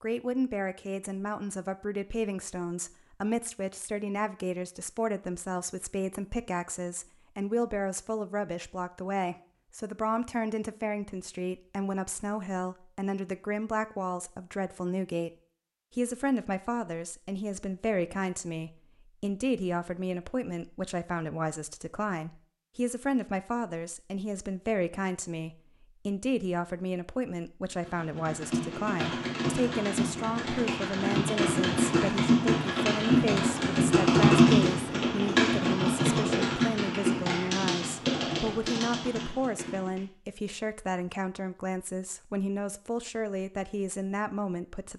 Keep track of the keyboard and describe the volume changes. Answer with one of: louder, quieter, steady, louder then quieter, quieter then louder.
louder then quieter.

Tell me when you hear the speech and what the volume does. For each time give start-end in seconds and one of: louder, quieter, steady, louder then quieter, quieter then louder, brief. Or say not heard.
0.0-15.3 steady
15.9-44.9 steady.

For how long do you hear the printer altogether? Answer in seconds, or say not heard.
not heard.